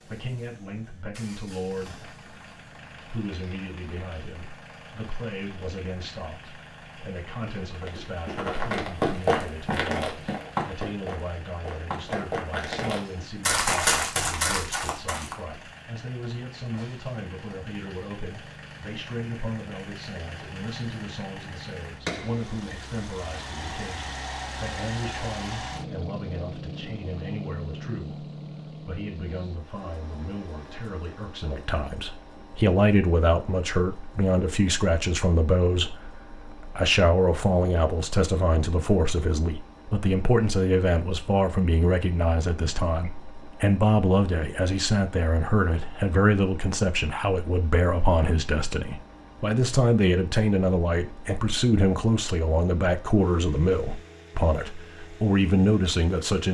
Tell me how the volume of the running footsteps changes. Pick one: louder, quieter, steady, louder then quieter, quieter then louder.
quieter then louder.